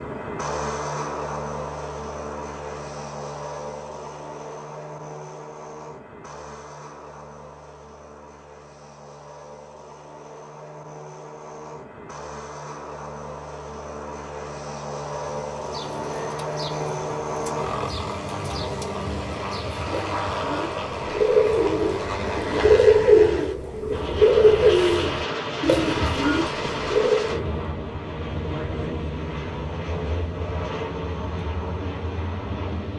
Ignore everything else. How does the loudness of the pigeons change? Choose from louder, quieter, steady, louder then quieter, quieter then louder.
louder then quieter.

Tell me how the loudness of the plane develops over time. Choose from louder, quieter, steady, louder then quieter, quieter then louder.
quieter then louder.